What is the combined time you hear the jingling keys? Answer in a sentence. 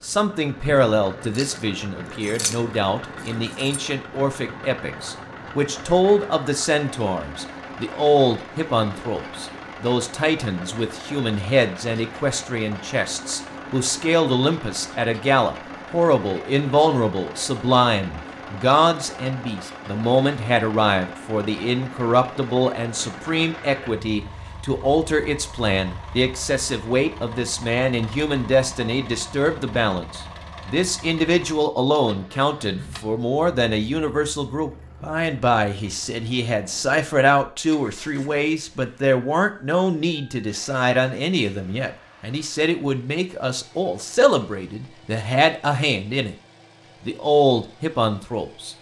The jingling keys can be heard for 2 seconds in total.